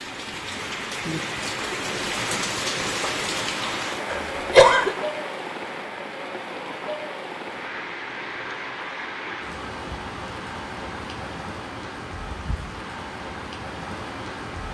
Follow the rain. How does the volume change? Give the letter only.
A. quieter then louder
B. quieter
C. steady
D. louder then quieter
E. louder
B.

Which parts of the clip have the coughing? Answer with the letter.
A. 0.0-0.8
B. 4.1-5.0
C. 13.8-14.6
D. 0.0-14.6
B.